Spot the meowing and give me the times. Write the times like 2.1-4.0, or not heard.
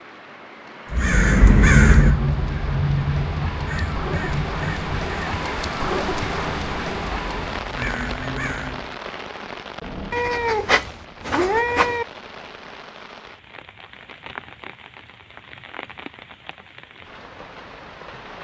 10.1-12.1.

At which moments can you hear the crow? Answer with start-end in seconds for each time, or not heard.
0.9-8.9.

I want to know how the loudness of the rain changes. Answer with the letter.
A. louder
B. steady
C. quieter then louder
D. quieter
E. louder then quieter
E.